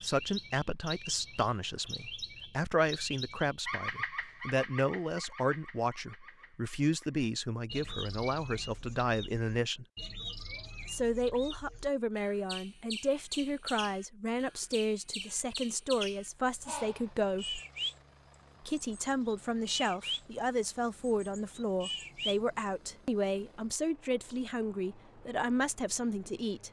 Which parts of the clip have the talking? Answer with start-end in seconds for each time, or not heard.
0.0-9.8, 10.8-17.6, 18.6-26.6.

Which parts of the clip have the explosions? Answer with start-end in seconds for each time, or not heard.
not heard.